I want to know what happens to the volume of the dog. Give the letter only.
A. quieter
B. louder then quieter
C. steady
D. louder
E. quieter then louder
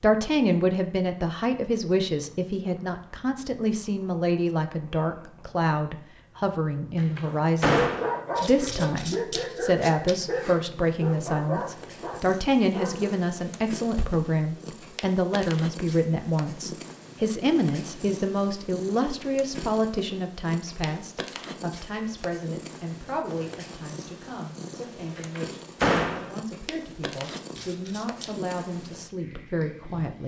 A.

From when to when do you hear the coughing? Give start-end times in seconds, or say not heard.
not heard.